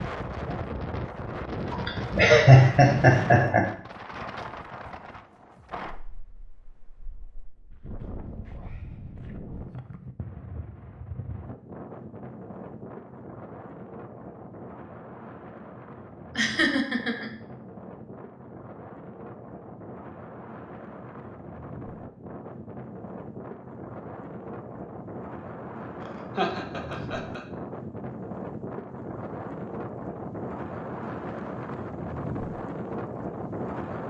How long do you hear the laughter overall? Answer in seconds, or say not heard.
4 s.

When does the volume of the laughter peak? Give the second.
2 s.